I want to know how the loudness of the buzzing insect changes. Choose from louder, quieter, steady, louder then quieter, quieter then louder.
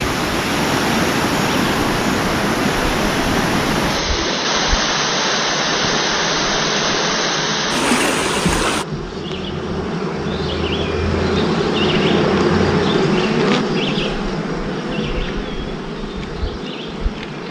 louder then quieter.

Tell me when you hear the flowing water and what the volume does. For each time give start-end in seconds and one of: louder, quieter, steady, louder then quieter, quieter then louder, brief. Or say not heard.
0.0-8.8 steady.